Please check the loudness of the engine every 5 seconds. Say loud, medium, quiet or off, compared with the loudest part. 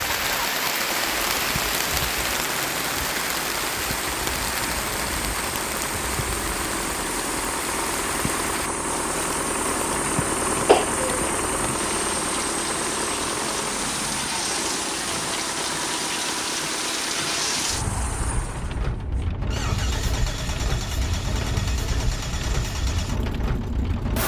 medium, loud, loud, medium, medium.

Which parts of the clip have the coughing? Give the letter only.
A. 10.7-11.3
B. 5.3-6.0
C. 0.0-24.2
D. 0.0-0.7
A.